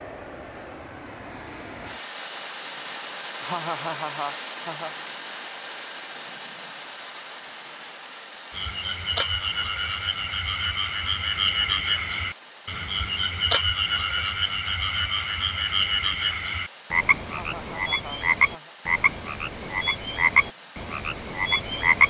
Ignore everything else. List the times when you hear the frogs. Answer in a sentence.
The frogs can be heard from 8.5 to 22.0 s.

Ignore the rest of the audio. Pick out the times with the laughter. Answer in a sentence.
The laughter can be heard from 3.4 to 5.0 s and from 17.2 to 18.8 s.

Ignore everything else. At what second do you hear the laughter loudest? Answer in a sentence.
The loudest moment of the laughter is at 4 seconds.